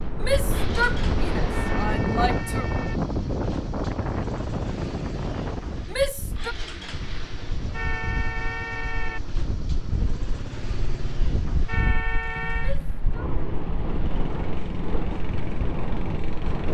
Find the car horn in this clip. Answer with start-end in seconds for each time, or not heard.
1.5-3.0, 7.7-9.2, 11.7-12.8.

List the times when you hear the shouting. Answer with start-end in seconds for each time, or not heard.
0.2-2.7, 5.9-6.5, 12.6-13.2.